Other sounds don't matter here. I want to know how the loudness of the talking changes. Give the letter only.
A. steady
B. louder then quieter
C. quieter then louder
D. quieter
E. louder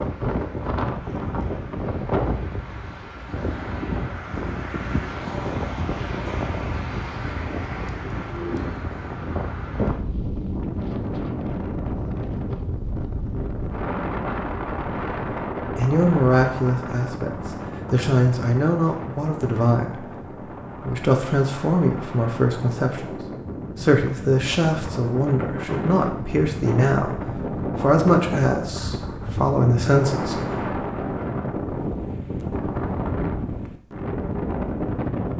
A.